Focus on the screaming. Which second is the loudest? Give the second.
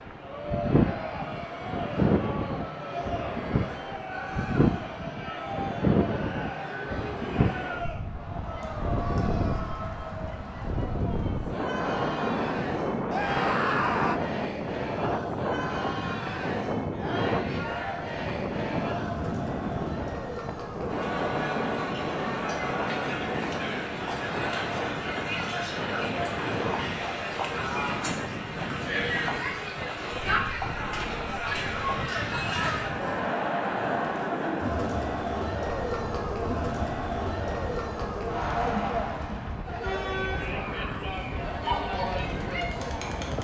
14 s.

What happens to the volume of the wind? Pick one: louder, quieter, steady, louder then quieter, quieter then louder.
quieter.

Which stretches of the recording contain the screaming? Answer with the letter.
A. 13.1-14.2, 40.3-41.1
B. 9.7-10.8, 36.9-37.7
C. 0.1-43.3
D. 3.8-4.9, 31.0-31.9
A.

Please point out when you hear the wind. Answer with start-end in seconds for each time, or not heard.
0.0-43.3.